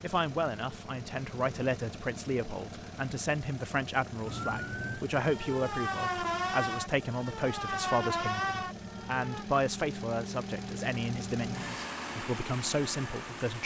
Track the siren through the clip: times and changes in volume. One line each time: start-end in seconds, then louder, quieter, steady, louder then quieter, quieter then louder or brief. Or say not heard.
4.2-9.4 louder.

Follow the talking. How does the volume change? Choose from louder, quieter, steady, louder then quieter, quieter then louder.
steady.